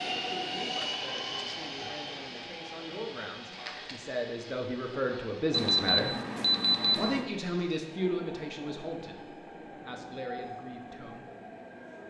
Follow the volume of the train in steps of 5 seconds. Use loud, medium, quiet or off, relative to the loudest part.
loud, medium, medium.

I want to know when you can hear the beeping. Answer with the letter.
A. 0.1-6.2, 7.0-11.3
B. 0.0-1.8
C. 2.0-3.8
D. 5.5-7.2
D.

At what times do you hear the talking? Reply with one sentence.
You can hear the talking from 0.1 to 6.2 s and from 7.0 to 11.3 s.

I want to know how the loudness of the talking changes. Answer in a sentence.
The volume of the talking goes up, then down.